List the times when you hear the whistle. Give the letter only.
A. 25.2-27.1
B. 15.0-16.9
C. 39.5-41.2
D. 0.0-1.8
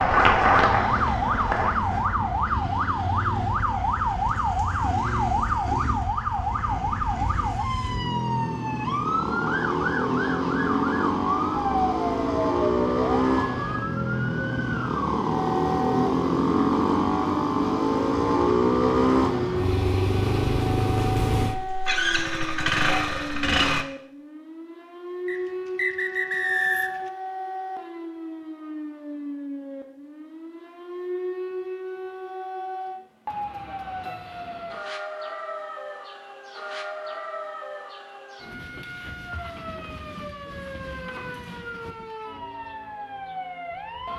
A.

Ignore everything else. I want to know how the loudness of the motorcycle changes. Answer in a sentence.
The volume of the motorcycle goes up.